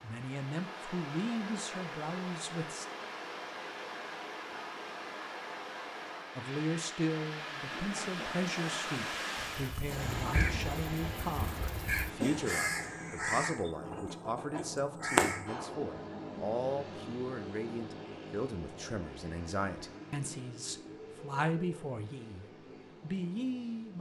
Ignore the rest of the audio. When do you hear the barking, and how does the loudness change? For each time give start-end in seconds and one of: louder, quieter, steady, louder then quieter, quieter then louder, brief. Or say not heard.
not heard.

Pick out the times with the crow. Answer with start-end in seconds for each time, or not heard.
9.3-15.6.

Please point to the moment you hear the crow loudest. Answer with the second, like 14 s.
15 s.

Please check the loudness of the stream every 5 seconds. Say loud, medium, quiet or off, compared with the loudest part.
loud, loud, loud, off, off.